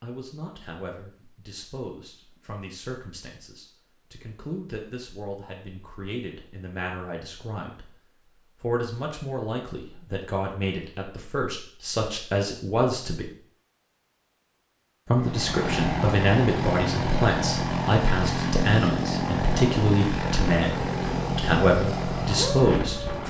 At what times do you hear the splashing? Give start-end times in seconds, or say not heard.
not heard.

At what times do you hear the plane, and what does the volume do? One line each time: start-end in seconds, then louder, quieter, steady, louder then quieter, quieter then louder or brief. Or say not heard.
15.2-23.2 steady.